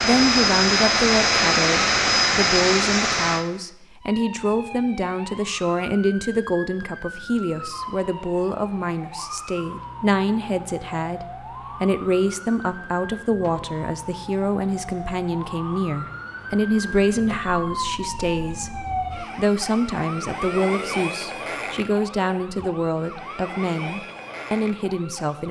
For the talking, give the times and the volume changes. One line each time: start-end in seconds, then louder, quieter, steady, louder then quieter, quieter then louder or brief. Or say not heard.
0.0-25.4 steady.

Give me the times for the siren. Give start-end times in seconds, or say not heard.
4.0-25.4.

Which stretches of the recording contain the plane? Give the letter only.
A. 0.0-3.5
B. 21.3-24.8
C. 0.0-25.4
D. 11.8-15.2
A.